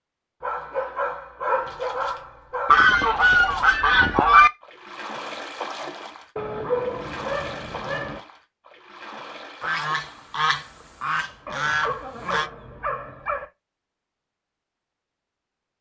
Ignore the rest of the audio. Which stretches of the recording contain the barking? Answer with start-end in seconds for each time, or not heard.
0.4-2.8, 6.3-8.2, 11.4-13.4.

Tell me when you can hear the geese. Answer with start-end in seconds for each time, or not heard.
2.6-4.5, 9.6-12.5.